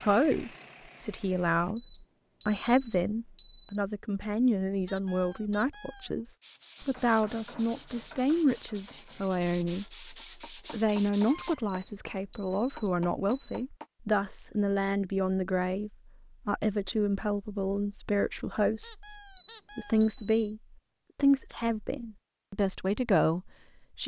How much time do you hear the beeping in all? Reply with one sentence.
You can hear the beeping for 5 seconds altogether.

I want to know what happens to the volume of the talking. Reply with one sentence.
The volume of the talking stays about the same.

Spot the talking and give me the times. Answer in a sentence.
The talking can be heard from 0.0 to 24.0 s.